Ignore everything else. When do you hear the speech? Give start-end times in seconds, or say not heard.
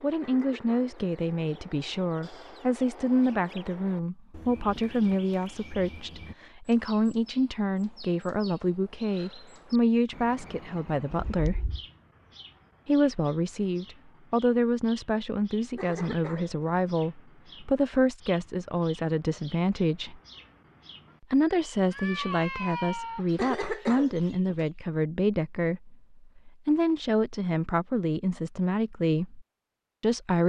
0.0-11.7, 12.8-20.2, 21.3-30.4.